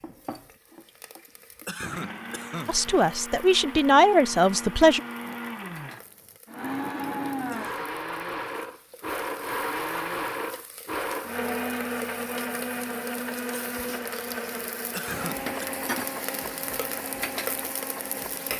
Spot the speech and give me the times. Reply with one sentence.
You can hear the speech from 2.6 to 5.0 s.